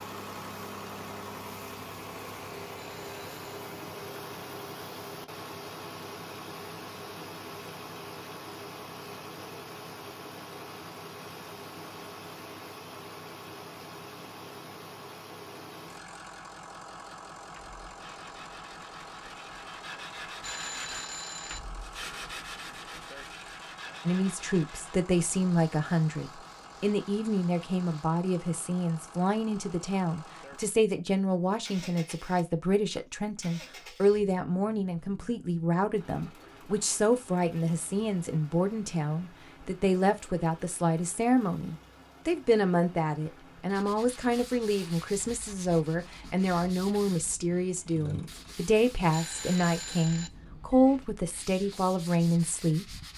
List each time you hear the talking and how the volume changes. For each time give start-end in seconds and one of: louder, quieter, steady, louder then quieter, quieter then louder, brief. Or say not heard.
24.1-52.9 steady.